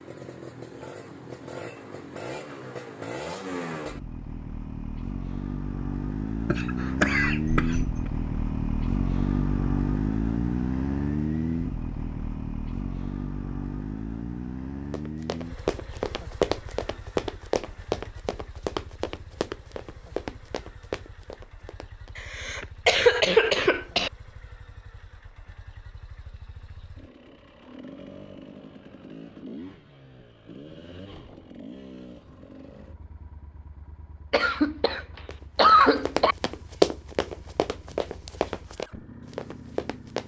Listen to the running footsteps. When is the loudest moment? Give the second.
37 s.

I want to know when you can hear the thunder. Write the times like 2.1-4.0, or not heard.
not heard.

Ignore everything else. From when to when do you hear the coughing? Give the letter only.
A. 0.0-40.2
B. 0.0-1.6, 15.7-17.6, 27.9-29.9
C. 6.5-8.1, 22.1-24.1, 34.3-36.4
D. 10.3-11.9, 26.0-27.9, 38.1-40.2
C.